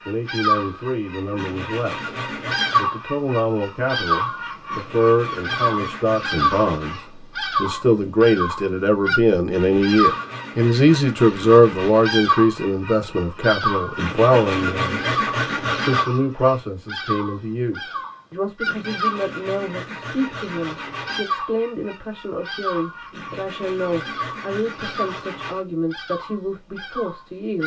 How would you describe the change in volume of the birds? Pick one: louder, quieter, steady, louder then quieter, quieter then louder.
quieter.